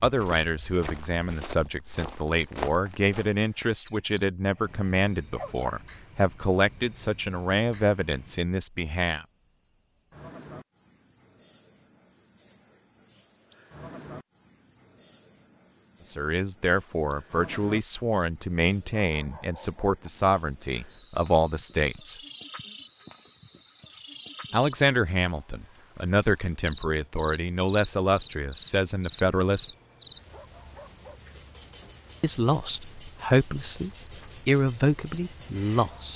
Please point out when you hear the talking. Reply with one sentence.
The talking can be heard from 0.0 to 9.2 s, from 16.1 to 22.1 s, from 24.5 to 29.7 s and from 32.2 to 36.1 s.